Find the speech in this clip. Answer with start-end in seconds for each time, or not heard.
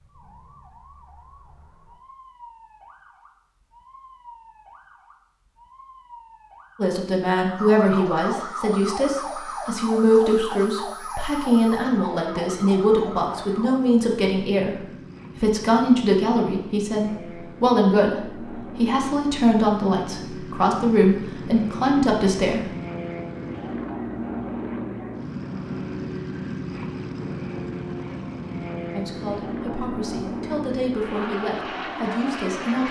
6.8-22.6, 28.9-32.8.